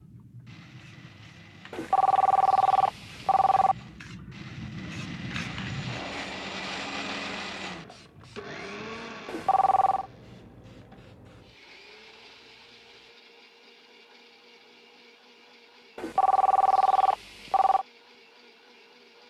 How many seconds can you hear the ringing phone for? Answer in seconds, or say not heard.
5 s.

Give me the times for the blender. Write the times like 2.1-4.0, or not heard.
0.0-19.2.